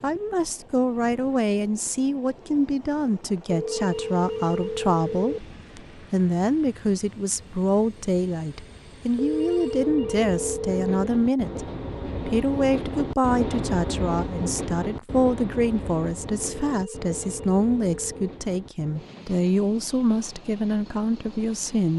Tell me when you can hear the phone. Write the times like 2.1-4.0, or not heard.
3.5-5.4, 9.2-11.1, 16.4-18.3.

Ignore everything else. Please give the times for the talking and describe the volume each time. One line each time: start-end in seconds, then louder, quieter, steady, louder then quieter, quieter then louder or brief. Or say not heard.
0.0-21.9 steady.